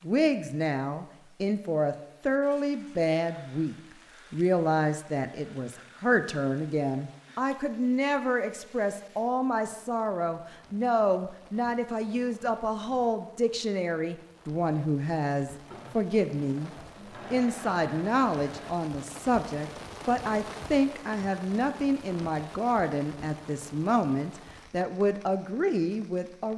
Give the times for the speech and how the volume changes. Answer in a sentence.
You can hear the speech from 0.0 to 16.7 s, at a steady volume; and from 17.3 to 26.5 s, at a steady volume.